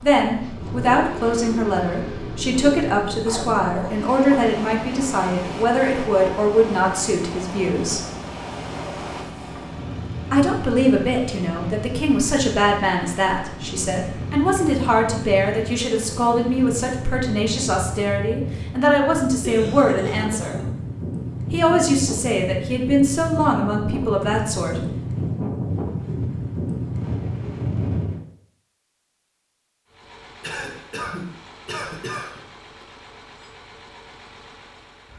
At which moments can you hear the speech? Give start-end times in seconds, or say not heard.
0.0-8.0, 10.3-20.6, 21.5-24.8.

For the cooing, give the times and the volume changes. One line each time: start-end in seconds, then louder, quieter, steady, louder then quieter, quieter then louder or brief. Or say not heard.
not heard.